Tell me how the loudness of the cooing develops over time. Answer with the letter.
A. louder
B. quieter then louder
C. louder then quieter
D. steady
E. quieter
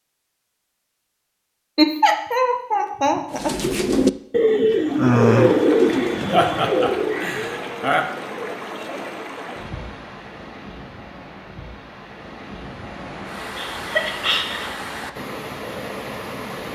E.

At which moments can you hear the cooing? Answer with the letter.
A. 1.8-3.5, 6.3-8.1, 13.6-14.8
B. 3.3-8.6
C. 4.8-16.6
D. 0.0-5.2
B.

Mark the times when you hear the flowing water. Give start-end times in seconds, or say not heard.
4.8-16.6.